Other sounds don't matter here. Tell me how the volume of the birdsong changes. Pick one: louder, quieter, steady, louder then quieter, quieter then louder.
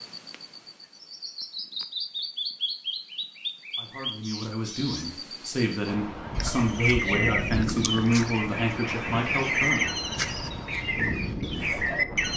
louder.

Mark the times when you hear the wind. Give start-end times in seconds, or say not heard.
5.8-12.3.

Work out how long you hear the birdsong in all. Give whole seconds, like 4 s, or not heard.
12 s.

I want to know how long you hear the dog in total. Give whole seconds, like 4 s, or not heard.
not heard.